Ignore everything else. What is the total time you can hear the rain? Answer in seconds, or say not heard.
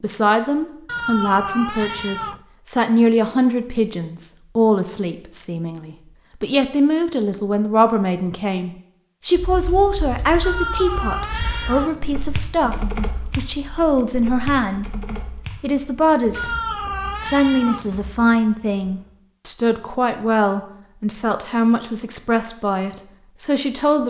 not heard.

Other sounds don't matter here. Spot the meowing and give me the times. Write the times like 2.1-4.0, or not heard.
0.8-2.4, 10.4-12.4, 16.4-18.1.